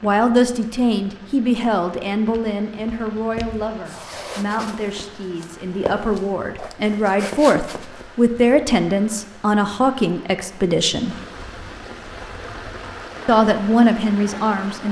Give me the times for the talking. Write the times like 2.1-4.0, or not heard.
0.0-11.2, 13.2-14.8.